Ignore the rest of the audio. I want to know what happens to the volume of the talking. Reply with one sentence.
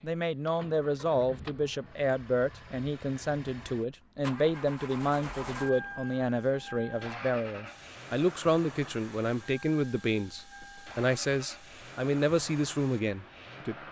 The loudness of the talking stays about the same.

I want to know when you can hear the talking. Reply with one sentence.
You can hear the talking from 0.0 to 13.8 s.